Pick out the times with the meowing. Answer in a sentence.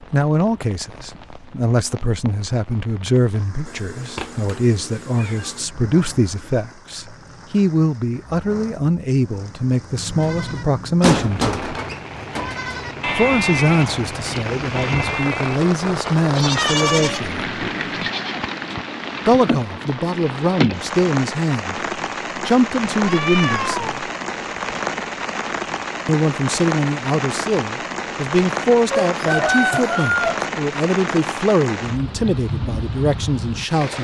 The meowing can be heard from 3.6 to 5.7 s, from 16.5 to 17.9 s and from 22.9 to 23.9 s.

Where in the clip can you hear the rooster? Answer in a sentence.
You can hear the rooster from 28.9 to 30.4 s.